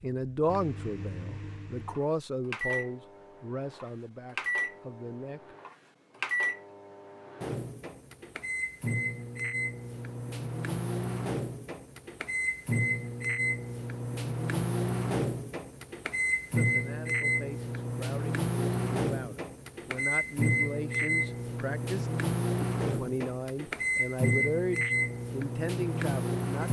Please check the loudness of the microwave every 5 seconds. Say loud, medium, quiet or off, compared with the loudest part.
medium, medium, loud, loud, loud, loud.